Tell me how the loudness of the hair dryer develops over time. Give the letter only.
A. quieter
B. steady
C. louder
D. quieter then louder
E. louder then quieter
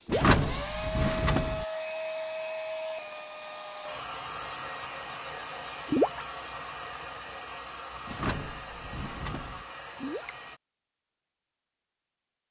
A.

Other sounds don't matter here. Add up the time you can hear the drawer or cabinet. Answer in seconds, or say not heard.
3 s.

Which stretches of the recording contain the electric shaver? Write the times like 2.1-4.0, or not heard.
not heard.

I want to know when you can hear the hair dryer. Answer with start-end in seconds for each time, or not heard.
0.0-10.6.